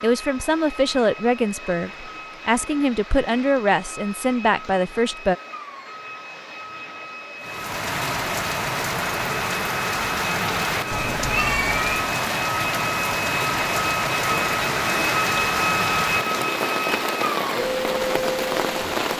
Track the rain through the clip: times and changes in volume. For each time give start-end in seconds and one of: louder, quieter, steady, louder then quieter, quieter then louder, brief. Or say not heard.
7.4-19.1 steady.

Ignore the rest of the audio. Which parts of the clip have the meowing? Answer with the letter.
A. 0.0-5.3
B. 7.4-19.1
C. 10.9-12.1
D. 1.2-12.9
C.